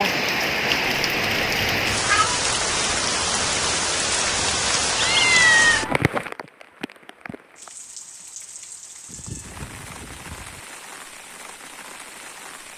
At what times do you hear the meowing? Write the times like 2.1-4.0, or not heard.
0.8-2.4, 5.0-6.0, 9.1-10.6.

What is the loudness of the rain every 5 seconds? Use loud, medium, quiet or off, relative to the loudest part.
loud, medium, quiet.